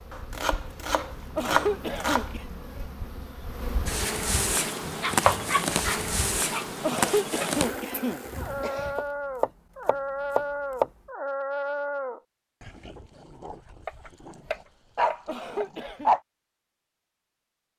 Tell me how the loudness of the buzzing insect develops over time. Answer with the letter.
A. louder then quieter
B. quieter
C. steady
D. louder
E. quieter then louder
D.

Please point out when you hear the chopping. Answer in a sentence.
The chopping can be heard from 0.1 to 2.3 s, from 4.8 to 6.2 s, from 8.9 to 10.9 s and from 13.8 to 15.7 s.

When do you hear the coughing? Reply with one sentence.
You can hear the coughing from 1.4 to 2.5 s, from 6.8 to 8.9 s and from 15.2 to 16.1 s.